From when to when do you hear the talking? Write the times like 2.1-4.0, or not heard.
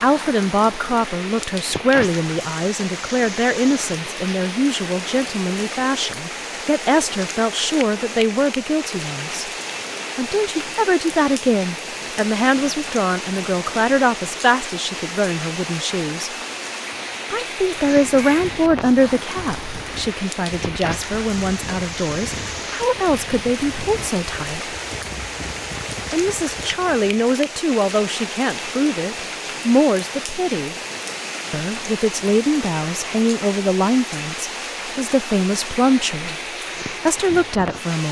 0.0-9.4, 10.2-16.3, 17.3-24.7, 26.1-30.8, 31.5-36.4, 37.0-38.0.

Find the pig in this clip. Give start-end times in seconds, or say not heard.
not heard.